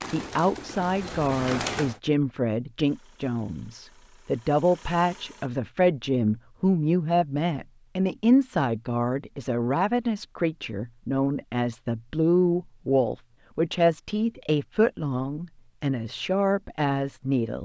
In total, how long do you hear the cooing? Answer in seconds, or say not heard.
2 s.